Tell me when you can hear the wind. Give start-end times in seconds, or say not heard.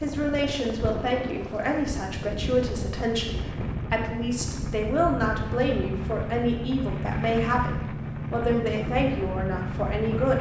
0.0-10.3.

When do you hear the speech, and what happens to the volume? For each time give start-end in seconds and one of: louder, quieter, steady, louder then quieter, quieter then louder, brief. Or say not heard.
0.0-10.3 steady.